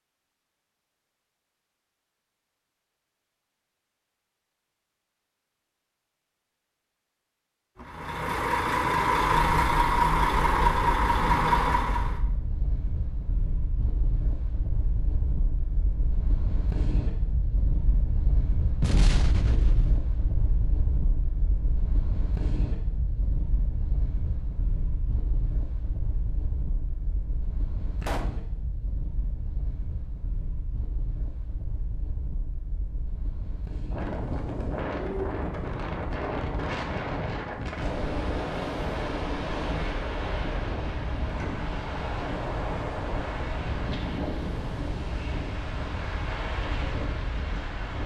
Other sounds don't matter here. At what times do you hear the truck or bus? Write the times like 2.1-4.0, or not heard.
7.8-12.2.